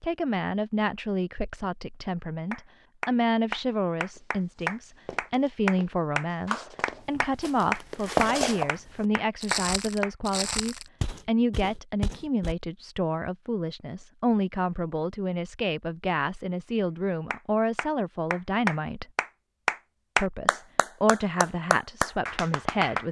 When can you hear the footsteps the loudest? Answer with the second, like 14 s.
8 s.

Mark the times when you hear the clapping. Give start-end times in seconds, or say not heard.
2.5-10.1, 17.3-23.0.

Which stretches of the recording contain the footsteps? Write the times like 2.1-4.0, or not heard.
4.1-12.6.